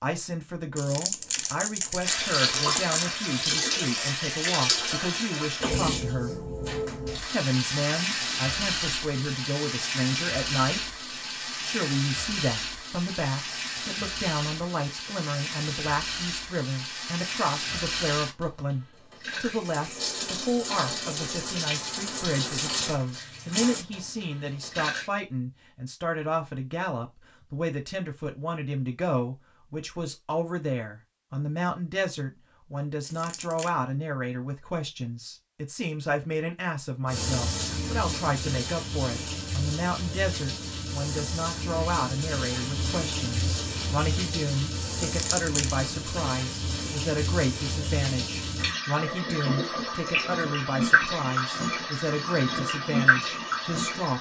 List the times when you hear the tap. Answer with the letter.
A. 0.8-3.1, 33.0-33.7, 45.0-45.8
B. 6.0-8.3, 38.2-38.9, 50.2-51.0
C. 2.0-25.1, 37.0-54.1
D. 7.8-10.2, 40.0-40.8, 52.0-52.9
C.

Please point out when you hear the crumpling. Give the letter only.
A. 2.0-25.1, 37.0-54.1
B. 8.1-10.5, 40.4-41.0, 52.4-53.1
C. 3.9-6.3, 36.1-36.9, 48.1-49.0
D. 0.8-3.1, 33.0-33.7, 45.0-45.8
D.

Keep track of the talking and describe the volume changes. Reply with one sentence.
The volume of the talking stays about the same.